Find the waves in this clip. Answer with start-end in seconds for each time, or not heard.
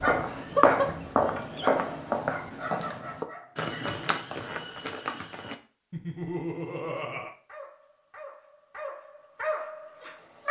not heard.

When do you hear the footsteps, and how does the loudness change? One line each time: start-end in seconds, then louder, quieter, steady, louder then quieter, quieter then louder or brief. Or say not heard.
0.0-5.5 quieter.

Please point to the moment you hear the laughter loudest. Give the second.
1 s.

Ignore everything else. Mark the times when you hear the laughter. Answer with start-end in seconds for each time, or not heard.
0.2-1.7, 5.9-7.3.